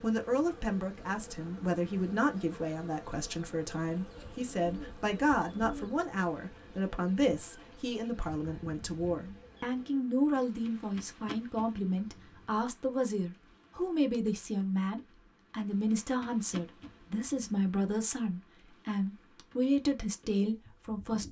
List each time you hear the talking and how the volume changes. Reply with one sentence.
You can hear the talking from 0.0 to 21.2 s, at a steady volume.